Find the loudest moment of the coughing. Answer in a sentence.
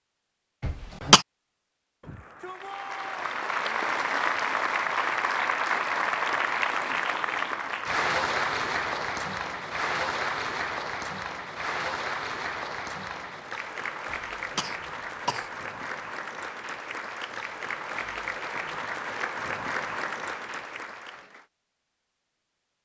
The volume of the coughing peaks at 1 second.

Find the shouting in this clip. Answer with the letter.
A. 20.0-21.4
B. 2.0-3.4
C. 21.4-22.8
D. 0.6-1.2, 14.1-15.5
B.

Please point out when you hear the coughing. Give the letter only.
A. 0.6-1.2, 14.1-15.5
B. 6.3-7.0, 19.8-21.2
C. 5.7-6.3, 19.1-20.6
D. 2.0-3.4
A.